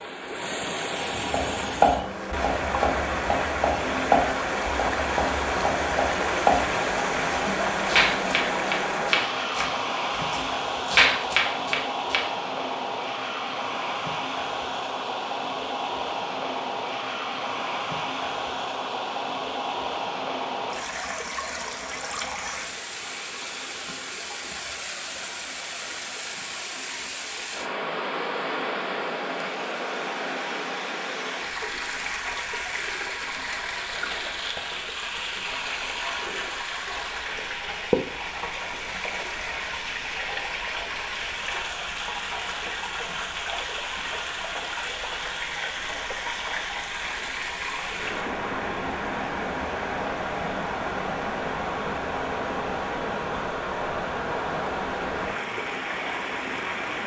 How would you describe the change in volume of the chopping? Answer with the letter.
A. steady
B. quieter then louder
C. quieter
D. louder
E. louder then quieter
B.